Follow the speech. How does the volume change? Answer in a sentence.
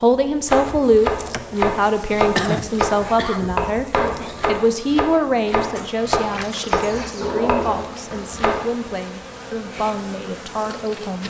The volume of the speech goes down.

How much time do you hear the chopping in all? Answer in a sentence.
The chopping can be heard for 8 seconds in total.